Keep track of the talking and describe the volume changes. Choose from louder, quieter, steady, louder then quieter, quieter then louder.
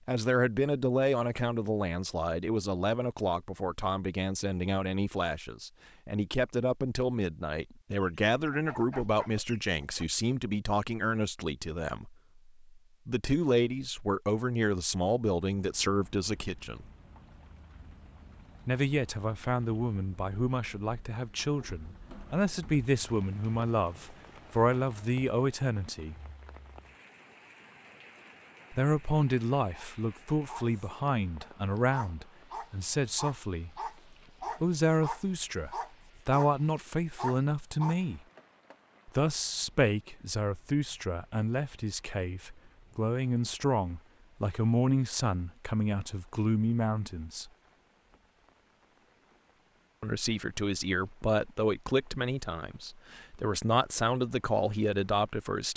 steady.